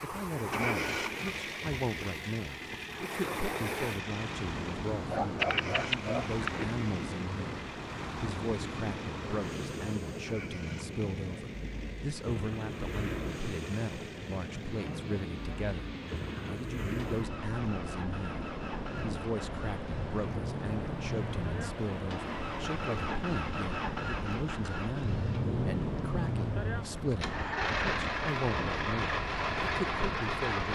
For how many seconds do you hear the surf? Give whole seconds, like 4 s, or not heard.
31 s.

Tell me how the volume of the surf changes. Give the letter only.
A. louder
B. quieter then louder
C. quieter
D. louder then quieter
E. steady
E.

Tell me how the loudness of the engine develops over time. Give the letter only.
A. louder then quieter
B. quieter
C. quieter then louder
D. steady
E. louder
C.